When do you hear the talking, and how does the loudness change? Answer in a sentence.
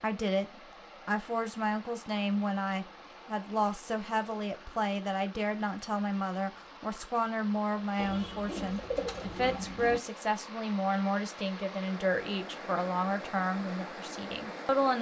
You can hear the talking from 0.0 to 14.9 s, at a steady volume.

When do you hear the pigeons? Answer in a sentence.
The pigeons can be heard from 8.0 to 10.0 s.